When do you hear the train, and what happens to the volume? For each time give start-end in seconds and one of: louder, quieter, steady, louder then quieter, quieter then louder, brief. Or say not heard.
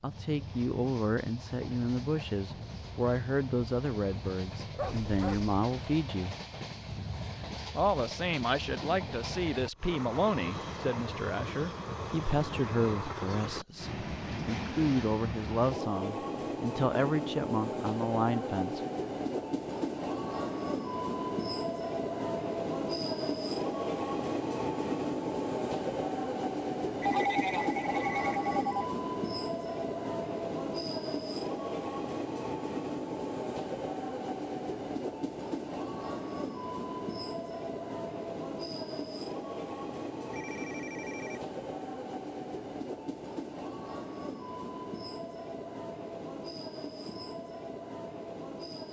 0.0-48.8 louder then quieter.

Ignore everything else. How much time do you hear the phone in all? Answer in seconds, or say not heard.
4 s.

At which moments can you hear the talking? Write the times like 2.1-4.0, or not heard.
0.0-6.3, 7.8-18.8.